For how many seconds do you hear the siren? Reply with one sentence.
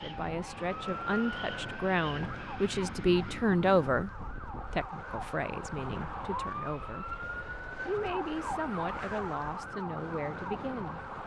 You can hear the siren for 11 seconds altogether.